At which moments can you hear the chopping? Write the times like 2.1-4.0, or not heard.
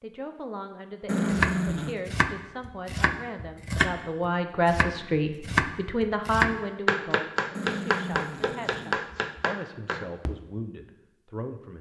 1.3-10.3.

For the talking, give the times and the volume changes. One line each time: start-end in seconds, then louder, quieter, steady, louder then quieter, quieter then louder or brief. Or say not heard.
0.0-11.7 louder then quieter.